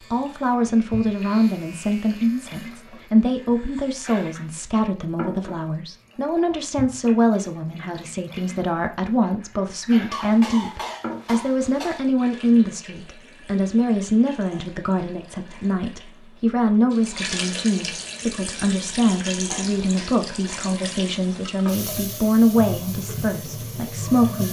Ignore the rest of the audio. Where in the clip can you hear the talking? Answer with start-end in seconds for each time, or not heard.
0.1-24.4.